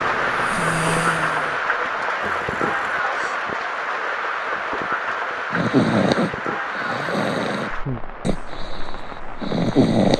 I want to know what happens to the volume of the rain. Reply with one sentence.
The volume of the rain goes down.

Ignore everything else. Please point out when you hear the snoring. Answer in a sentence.
The snoring can be heard from 0.0 to 3.4 s and from 5.5 to 10.1 s.